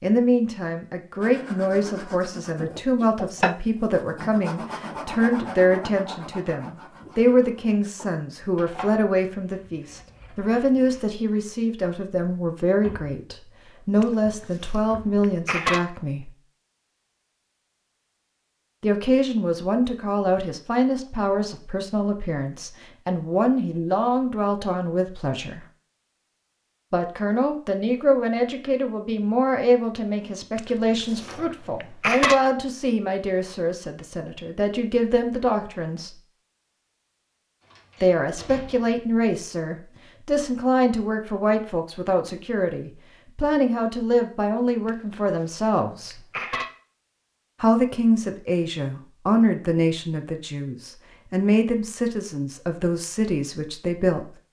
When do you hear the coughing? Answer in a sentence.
You can hear the coughing from 14.0 to 15.8 s, from 30.6 to 32.4 s and from 44.9 to 46.6 s.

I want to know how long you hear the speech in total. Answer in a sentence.
The speech can be heard for 47 seconds in total.